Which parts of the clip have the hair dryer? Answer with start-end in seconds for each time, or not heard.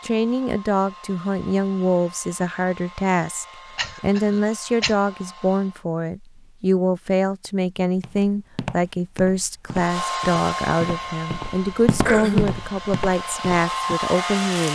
0.0-5.8, 9.7-14.7.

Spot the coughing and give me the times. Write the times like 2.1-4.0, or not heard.
3.8-5.0, 12.1-12.7.